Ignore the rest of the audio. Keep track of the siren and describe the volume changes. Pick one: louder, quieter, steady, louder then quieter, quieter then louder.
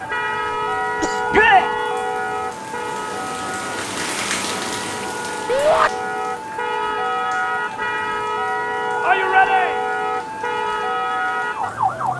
quieter then louder.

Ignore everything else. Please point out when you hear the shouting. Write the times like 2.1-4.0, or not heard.
1.3-1.8, 5.5-5.9, 9.0-9.8.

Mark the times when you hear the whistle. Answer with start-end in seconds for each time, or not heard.
not heard.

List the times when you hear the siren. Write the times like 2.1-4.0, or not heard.
0.0-12.1.